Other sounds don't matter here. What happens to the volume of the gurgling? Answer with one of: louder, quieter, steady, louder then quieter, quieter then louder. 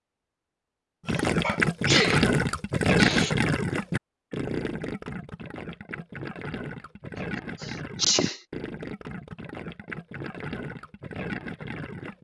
quieter.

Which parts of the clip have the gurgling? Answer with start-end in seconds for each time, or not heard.
1.1-12.1.